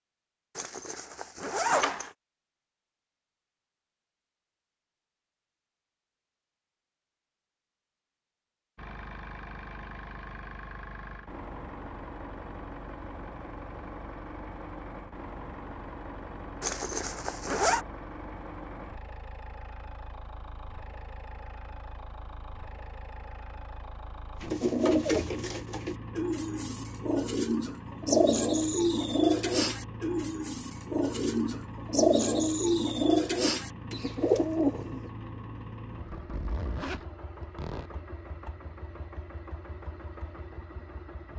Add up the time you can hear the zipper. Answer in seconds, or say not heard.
5 s.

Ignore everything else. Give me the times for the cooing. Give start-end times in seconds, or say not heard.
24.4-35.1.